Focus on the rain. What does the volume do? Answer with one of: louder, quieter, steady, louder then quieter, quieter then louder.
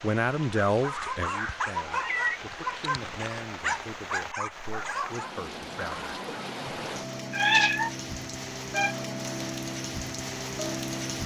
louder.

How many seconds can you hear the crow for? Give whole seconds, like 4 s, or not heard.
not heard.